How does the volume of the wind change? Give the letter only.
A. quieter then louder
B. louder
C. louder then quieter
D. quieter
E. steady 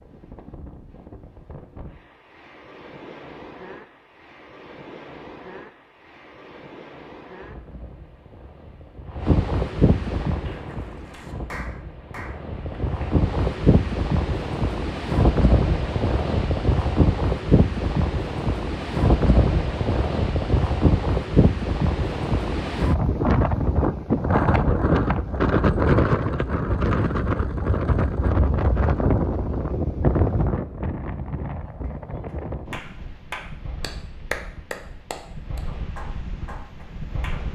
C.